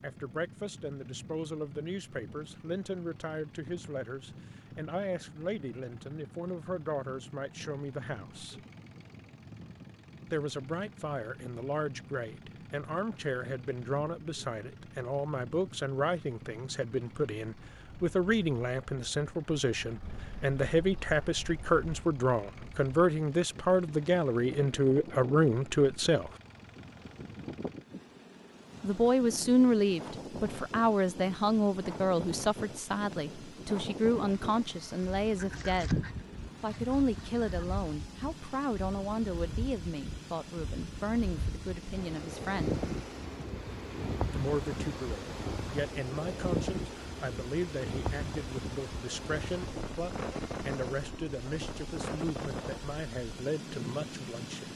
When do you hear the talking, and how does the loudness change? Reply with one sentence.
You can hear the talking from 0.0 to 8.6 s, at a steady volume; from 10.3 to 26.3 s, getting louder; from 28.8 to 36.0 s, getting quieter; from 36.6 to 42.8 s, getting quieter; and from 44.3 to 54.7 s, at a steady volume.